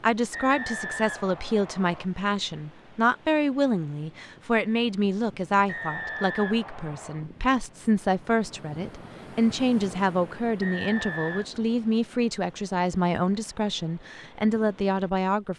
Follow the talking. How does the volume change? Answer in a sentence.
The volume of the talking stays about the same.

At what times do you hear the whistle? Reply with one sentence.
You can hear the whistle from 0.3 to 2.0 s, from 5.7 to 7.2 s and from 10.6 to 11.4 s.